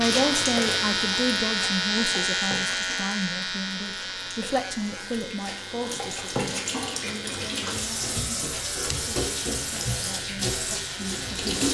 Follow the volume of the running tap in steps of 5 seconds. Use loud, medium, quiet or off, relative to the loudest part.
medium, loud, loud.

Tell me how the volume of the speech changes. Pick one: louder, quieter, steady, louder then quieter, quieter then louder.
quieter.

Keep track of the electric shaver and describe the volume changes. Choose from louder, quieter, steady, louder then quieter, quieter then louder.
quieter.